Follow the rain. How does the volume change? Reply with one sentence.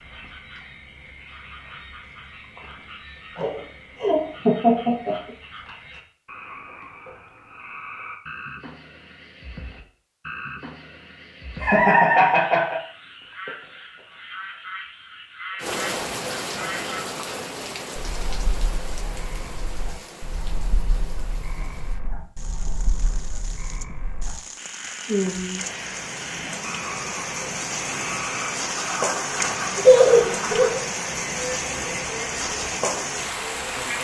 The loudness of the rain goes down, then up.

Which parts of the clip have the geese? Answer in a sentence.
You can't hear the geese here.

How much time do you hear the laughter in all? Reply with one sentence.
The laughter can be heard for 4 seconds in total.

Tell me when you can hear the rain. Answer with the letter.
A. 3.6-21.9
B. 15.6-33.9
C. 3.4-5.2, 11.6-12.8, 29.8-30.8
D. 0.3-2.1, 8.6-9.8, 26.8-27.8
B.